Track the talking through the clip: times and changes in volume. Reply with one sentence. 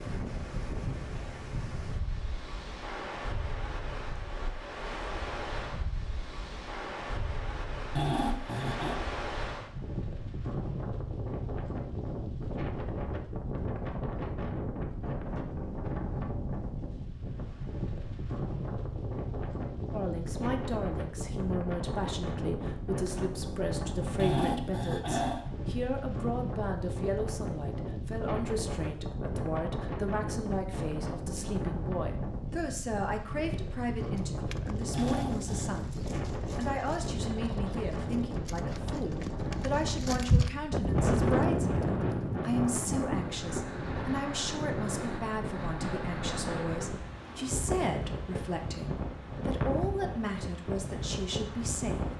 You can hear the talking from 19.9 to 52.0 s, at a steady volume.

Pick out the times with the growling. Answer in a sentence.
You can hear the growling from 8.0 to 9.0 s, from 24.1 to 25.4 s and from 34.9 to 35.7 s.